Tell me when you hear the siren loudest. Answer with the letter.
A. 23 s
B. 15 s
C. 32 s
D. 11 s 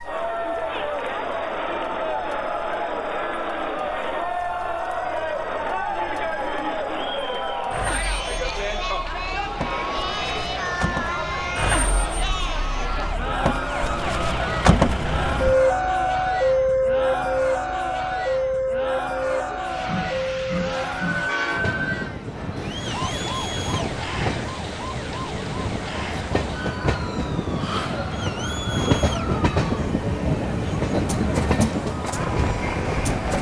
B.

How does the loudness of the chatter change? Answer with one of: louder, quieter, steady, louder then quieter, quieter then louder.
quieter.